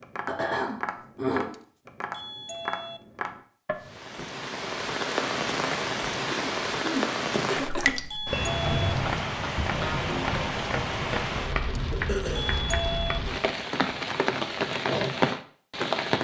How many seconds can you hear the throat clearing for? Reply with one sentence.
The throat clearing can be heard for 4 seconds in total.